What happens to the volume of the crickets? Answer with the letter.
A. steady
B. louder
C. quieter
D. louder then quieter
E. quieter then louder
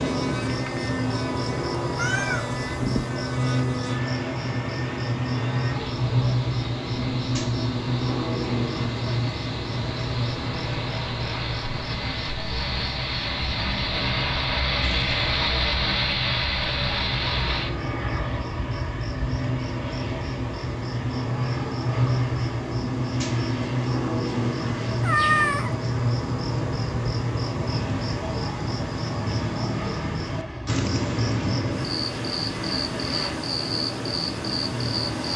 E.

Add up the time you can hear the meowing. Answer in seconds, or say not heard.
2 s.